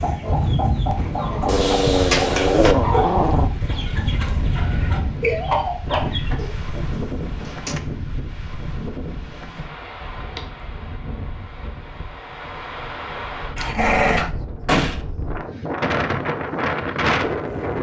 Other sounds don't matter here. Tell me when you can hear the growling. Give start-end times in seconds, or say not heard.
1.4-3.5, 13.6-14.3.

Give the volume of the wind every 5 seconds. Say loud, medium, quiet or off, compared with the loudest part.
loud, medium, medium, loud.